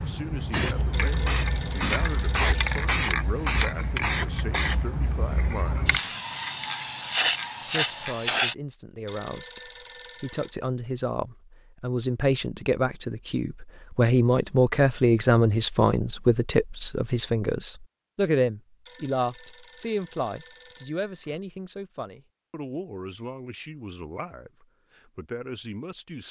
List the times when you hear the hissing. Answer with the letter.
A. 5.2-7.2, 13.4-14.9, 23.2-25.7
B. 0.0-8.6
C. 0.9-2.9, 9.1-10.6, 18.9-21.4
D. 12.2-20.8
B.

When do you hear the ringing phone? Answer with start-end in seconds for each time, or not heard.
0.9-2.9, 9.1-10.6, 18.9-21.4.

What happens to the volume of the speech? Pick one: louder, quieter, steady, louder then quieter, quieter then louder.
louder then quieter.